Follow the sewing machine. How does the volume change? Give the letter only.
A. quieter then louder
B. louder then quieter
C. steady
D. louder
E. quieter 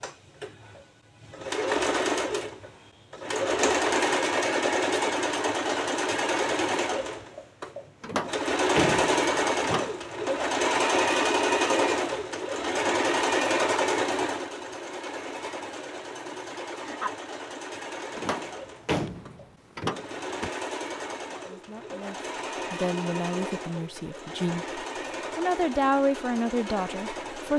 E.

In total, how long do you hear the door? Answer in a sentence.
The door can be heard for 4 seconds in total.